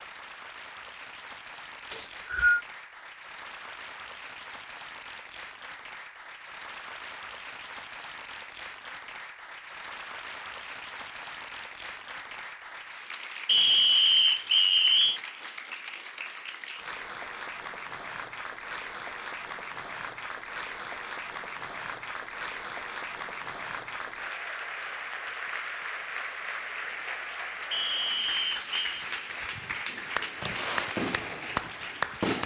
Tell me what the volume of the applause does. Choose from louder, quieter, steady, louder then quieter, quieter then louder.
louder.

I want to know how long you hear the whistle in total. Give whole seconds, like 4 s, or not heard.
4 s.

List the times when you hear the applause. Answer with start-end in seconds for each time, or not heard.
0.0-32.4.